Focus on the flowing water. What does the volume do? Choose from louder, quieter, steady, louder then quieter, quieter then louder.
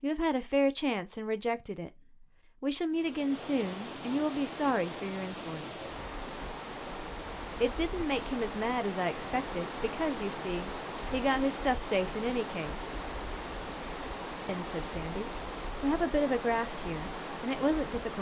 steady.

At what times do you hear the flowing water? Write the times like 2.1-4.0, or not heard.
2.9-18.1.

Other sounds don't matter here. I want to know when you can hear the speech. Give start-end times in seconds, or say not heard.
0.0-5.9, 7.6-13.0, 14.4-18.1.